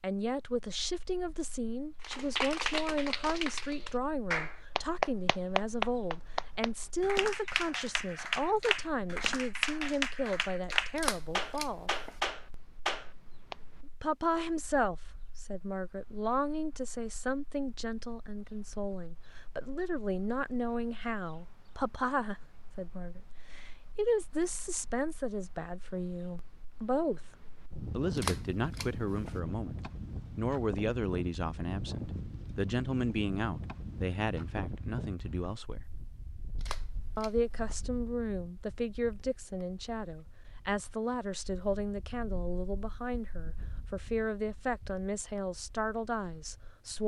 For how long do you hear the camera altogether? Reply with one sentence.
You can hear the camera for 4 seconds altogether.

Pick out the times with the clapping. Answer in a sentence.
You can hear the clapping from 2.0 to 13.6 s.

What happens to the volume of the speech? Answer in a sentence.
The volume of the speech stays about the same.